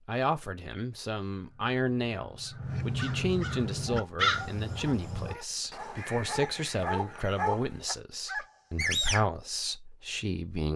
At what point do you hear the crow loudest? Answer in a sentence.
The volume of the crow peaks at 4 seconds.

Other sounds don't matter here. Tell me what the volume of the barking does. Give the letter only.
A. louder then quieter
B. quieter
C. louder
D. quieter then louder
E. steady
C.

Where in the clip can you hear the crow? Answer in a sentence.
You can hear the crow from 1.4 to 7.6 s.